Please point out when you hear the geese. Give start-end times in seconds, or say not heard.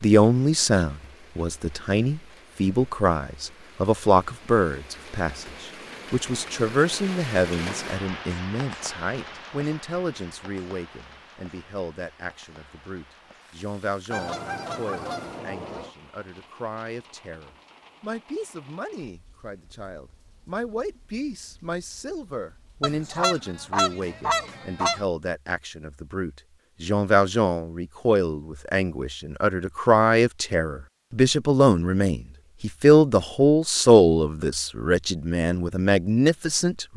14.1-15.9, 22.8-25.1.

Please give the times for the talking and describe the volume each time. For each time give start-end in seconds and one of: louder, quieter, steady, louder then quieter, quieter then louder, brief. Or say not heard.
0.0-36.9 quieter then louder.